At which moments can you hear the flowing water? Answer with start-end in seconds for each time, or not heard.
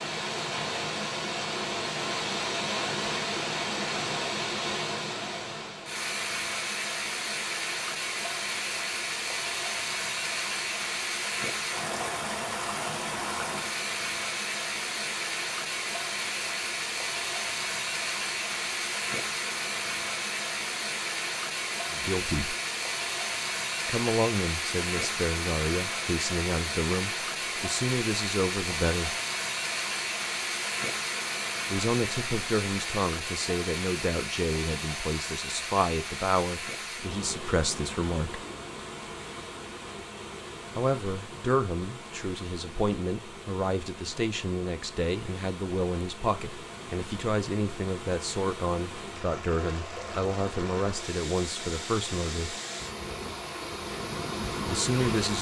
0.0-55.3.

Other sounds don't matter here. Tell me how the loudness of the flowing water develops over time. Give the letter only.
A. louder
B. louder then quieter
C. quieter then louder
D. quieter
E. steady
D.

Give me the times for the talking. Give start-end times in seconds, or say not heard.
21.9-22.6, 23.9-29.1, 31.7-38.4, 40.8-52.5, 54.6-55.3.